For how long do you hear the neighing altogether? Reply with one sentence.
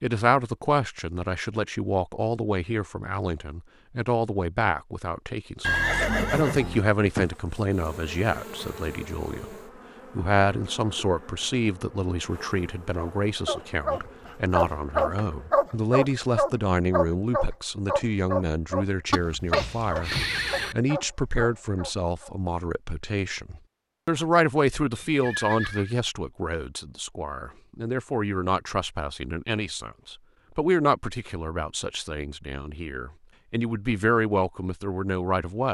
You can hear the neighing for 4 seconds altogether.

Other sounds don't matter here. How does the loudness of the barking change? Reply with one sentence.
The loudness of the barking goes down.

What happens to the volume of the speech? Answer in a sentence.
The loudness of the speech stays about the same.